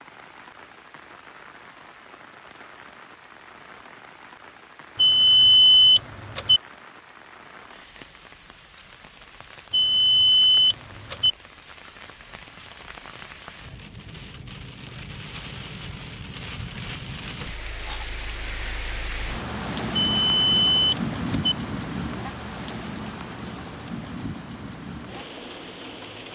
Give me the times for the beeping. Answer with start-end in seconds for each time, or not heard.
5.0-6.6, 9.7-11.3, 19.9-21.6.